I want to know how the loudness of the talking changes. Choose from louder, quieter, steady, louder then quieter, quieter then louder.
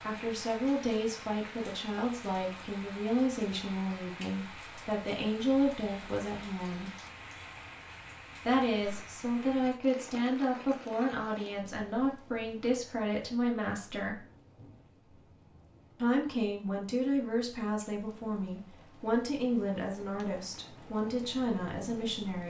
steady.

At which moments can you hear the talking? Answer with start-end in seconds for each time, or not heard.
0.0-6.9, 8.4-14.2, 16.0-22.4.